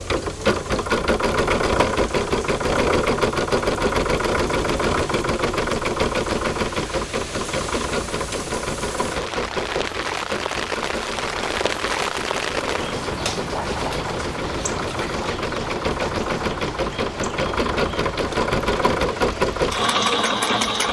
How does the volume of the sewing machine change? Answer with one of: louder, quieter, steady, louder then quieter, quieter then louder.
quieter then louder.